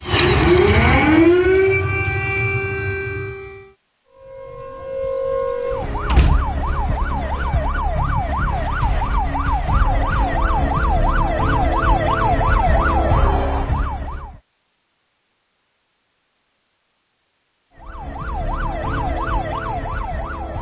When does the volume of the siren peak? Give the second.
1 s.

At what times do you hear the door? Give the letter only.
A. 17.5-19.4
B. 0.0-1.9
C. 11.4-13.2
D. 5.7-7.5
D.